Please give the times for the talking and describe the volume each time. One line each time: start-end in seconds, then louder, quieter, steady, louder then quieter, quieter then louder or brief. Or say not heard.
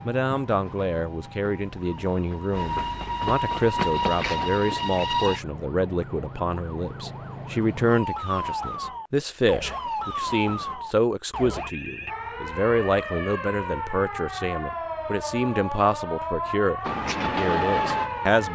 0.0-18.5 steady.